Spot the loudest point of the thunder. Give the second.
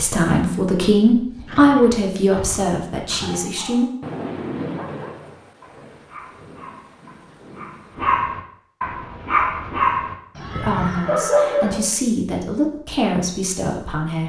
5 s.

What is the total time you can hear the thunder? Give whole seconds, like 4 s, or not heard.
4 s.